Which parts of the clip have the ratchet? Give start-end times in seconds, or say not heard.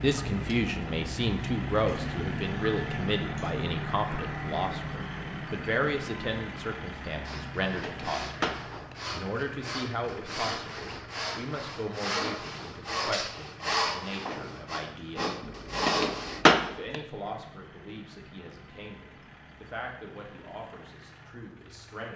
not heard.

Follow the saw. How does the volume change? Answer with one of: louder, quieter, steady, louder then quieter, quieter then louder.
louder.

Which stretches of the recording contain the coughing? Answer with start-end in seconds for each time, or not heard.
not heard.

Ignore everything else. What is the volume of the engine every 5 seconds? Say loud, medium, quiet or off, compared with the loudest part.
loud, medium, quiet, quiet, quiet.